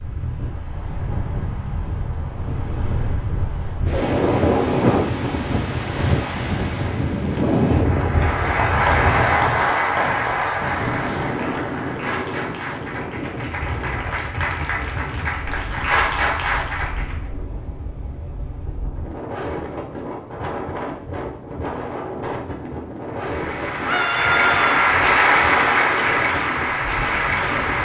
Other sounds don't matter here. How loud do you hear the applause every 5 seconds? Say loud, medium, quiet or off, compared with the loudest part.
off, loud, medium, medium, loud, loud.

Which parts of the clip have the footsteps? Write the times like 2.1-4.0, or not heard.
not heard.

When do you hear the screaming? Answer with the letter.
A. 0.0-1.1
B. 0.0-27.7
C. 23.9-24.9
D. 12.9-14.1
C.